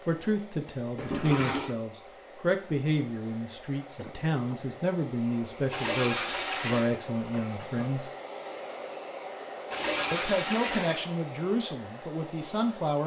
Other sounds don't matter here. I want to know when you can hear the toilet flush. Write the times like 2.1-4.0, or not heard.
0.9-1.8, 5.7-7.0, 9.7-11.1.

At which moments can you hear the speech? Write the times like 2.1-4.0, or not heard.
0.0-8.1, 10.1-13.0.